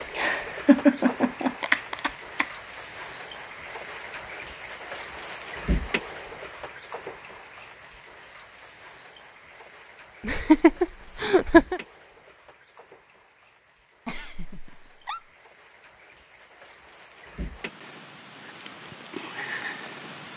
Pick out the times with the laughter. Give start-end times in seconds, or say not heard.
0.1-2.5, 10.2-11.8, 14.1-15.3.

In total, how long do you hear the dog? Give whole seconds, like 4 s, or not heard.
not heard.